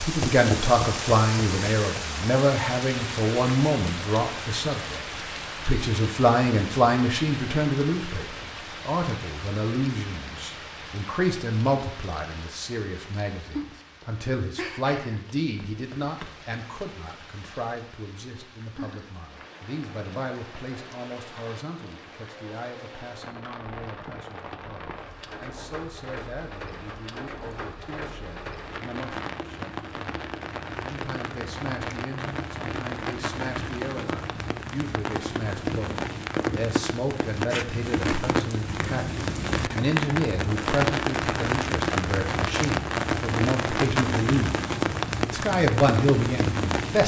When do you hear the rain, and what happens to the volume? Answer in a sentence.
You can hear the rain from 0.0 to 47.0 s, getting quieter then louder.